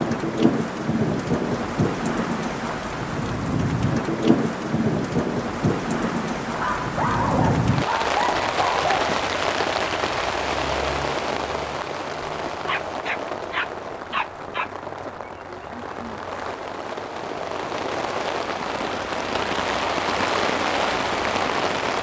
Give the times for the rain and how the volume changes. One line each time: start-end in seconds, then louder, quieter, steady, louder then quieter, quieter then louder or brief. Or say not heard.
0.0-21.9 quieter then louder.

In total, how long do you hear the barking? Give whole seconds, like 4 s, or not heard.
5 s.